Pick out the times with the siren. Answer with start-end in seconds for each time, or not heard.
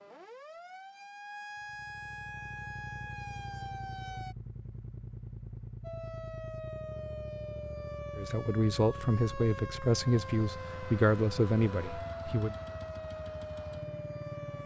0.0-4.3, 5.8-14.6.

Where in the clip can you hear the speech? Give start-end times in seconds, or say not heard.
8.2-12.6.